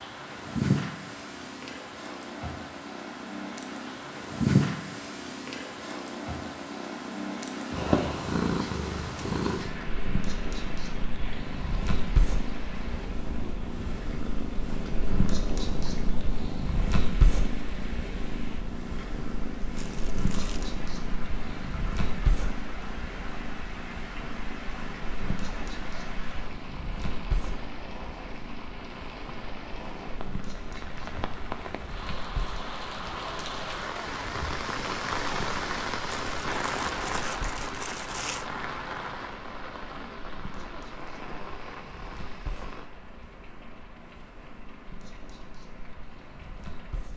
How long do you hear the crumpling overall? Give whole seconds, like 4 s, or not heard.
3 s.